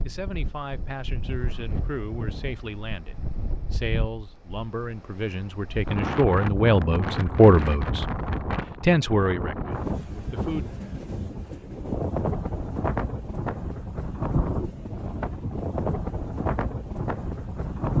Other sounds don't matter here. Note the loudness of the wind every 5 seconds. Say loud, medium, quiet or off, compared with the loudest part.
medium, loud, loud, loud.